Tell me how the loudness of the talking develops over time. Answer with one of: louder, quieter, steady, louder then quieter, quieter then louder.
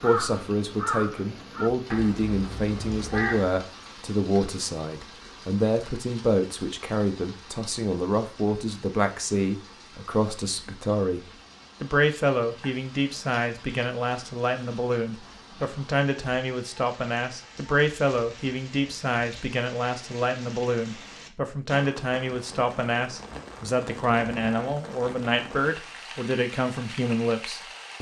steady.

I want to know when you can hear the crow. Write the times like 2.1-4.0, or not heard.
0.0-3.6.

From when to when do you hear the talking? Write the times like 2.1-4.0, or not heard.
0.0-27.9.